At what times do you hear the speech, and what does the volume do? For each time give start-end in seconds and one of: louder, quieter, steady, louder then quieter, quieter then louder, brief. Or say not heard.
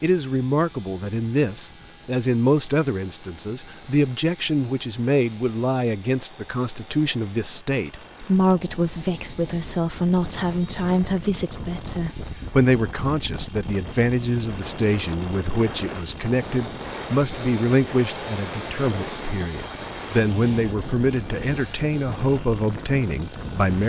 0.0-23.8 steady.